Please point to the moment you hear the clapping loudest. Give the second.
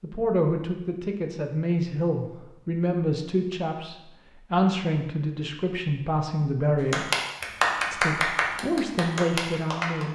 8 s.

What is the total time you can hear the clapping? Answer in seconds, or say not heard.
3 s.